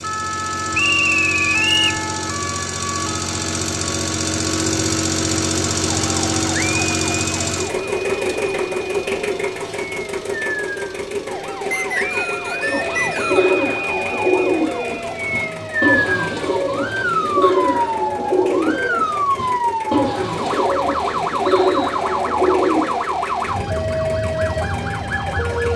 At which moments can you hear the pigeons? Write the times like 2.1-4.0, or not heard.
12.6-23.1.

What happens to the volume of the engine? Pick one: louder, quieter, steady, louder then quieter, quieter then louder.
quieter.